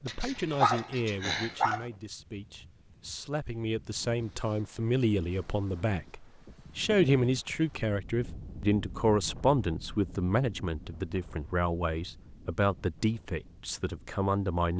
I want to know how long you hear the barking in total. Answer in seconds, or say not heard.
2 s.